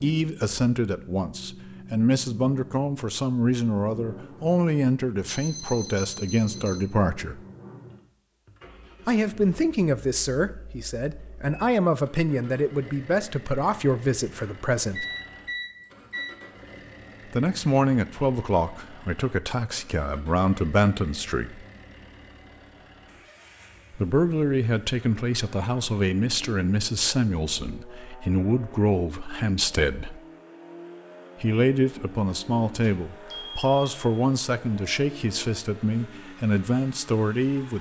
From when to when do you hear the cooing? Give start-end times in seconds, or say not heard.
not heard.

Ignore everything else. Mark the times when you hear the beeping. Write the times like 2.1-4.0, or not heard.
5.2-6.8, 14.3-16.4, 32.8-33.9.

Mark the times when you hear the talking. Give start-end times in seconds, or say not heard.
0.0-7.4, 9.1-15.1, 17.3-21.6, 23.9-30.2, 31.4-37.7.